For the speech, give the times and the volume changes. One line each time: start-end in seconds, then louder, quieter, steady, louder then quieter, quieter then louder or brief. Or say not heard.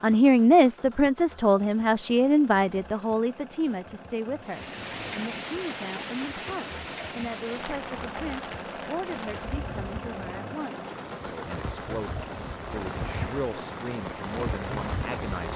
0.0-15.5 quieter.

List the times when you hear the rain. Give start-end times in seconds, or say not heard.
4.5-15.5.